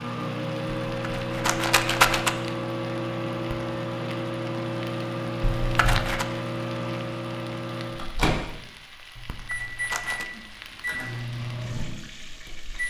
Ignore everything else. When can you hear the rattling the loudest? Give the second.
2 s.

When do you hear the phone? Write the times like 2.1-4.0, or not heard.
not heard.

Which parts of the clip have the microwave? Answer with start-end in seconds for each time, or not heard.
0.0-12.8.